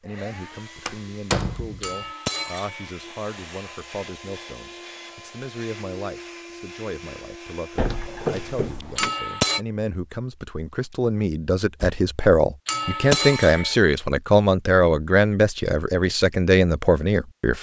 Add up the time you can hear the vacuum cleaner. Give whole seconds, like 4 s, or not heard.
9 s.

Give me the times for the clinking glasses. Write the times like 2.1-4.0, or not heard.
1.8-2.9, 8.9-9.6, 12.7-13.8.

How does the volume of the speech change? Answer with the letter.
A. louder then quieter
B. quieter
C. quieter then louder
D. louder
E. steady
D.